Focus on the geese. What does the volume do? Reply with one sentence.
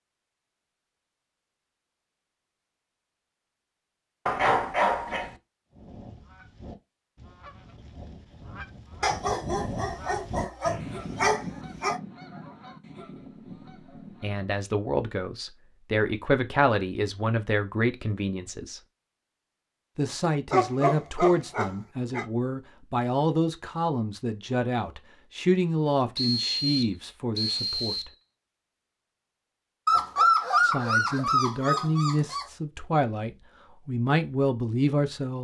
The volume of the geese goes up, then down.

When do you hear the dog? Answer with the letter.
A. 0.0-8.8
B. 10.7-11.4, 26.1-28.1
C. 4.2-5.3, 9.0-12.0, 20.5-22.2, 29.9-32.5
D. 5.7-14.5
C.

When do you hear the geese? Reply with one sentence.
The geese can be heard from 5.7 to 14.5 s.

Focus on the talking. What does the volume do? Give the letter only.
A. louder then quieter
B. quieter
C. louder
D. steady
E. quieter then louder
D.